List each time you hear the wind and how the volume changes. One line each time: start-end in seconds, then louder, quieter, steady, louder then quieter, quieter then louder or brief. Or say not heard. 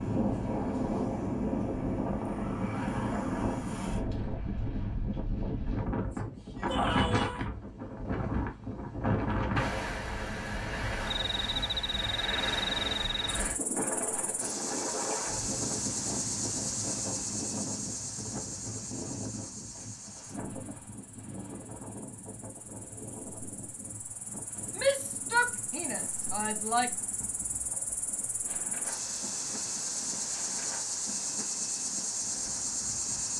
0.0-33.3 quieter.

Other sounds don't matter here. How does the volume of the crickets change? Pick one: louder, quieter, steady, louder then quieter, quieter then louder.
quieter then louder.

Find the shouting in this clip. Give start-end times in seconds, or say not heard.
6.7-7.5, 24.8-26.9.